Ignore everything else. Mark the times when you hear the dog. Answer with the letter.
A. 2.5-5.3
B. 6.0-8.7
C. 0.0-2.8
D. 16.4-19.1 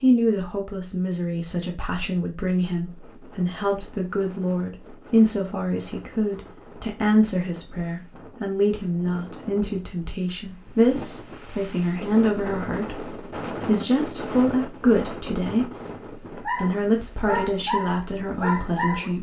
D.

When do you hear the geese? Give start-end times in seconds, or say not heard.
not heard.